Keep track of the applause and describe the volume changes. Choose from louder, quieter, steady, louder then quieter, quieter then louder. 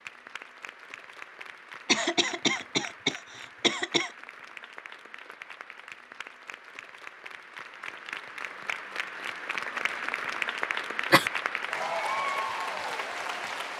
louder.